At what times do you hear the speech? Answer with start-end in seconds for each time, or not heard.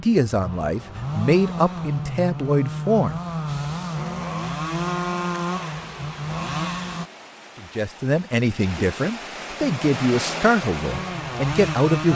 0.0-3.1, 7.5-12.1.